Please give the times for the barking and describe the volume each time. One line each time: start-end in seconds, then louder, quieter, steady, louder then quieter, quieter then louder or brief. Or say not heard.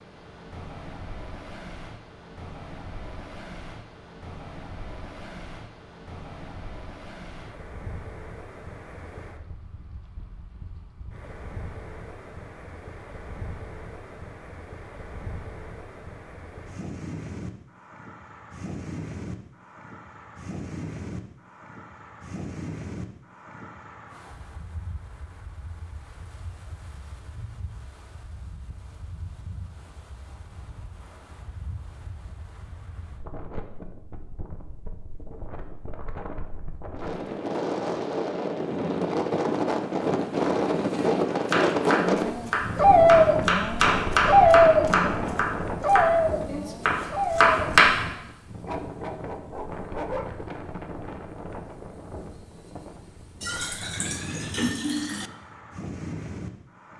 42.0-50.3 quieter.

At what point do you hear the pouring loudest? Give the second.
55 s.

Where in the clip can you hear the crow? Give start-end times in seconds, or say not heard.
not heard.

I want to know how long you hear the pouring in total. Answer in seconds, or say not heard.
2 s.